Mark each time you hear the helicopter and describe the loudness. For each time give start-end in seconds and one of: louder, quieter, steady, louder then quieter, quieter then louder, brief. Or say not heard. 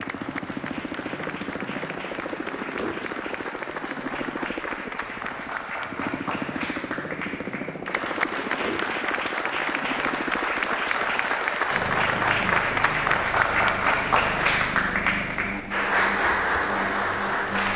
0.0-17.7 steady.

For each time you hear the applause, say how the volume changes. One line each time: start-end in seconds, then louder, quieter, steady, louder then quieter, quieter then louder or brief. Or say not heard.
0.0-17.7 louder.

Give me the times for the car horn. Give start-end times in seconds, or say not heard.
not heard.